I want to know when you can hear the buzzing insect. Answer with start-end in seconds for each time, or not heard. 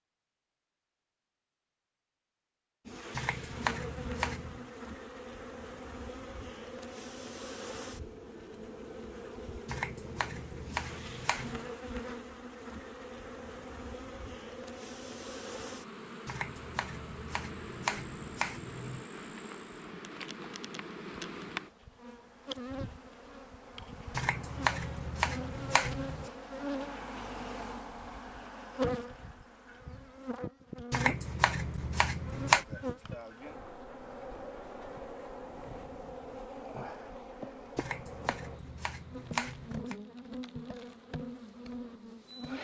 2.9-42.5.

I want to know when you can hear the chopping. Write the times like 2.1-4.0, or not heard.
3.1-4.7, 9.7-11.7, 16.2-19.1, 24.1-26.3, 30.9-32.6, 37.8-40.0.